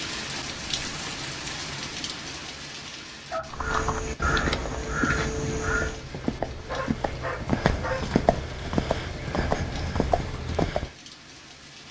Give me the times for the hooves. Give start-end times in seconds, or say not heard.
3.5-10.9.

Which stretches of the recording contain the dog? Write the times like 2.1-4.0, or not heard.
3.3-3.7, 6.7-8.2.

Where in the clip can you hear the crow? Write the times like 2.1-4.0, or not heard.
3.5-6.0.